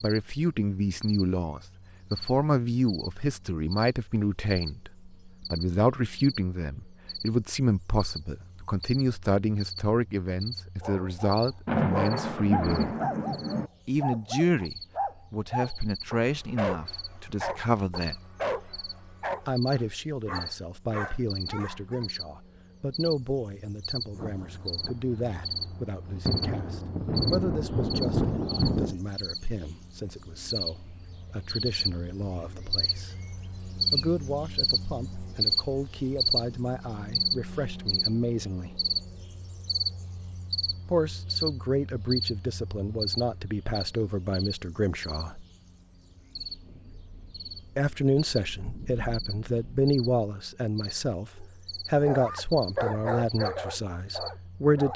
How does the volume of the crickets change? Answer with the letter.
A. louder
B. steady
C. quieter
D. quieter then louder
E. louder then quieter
E.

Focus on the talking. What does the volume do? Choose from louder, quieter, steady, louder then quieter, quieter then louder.
quieter then louder.